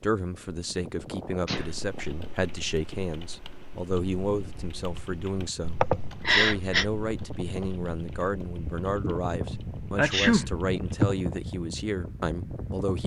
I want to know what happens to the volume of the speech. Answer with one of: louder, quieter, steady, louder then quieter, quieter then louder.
steady.